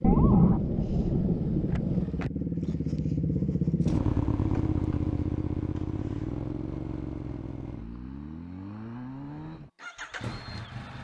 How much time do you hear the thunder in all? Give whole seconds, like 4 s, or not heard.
2 s.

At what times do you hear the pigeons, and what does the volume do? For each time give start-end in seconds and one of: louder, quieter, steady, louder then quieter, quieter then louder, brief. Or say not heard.
not heard.